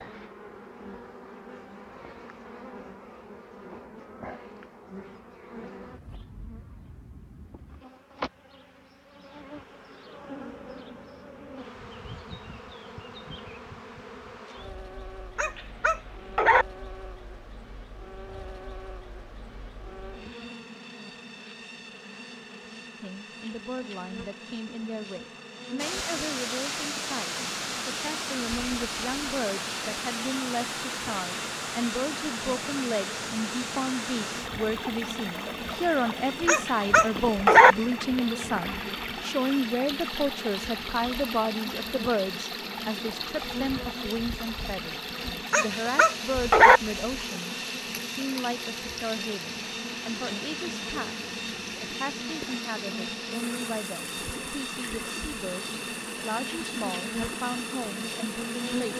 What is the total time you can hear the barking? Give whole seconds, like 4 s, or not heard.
4 s.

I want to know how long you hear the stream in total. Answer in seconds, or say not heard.
33 s.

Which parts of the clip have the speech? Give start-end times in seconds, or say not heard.
23.0-58.9.